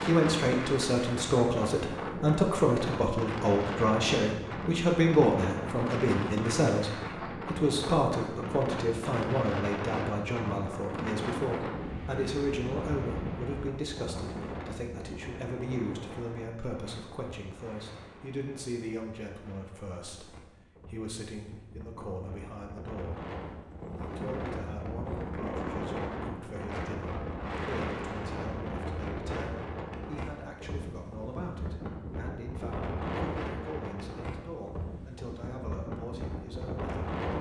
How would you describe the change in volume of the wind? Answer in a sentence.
The volume of the wind goes down, then up.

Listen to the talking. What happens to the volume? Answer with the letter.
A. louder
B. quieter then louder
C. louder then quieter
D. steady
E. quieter
E.